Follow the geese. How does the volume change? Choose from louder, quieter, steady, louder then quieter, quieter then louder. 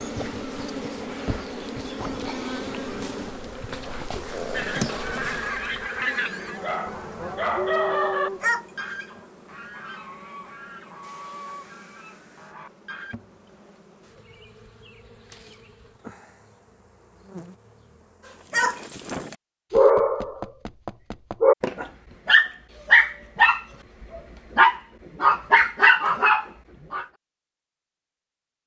quieter.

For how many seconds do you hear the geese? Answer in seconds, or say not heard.
9 s.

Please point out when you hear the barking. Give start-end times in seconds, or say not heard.
0.0-5.8, 6.5-8.6, 18.5-27.1.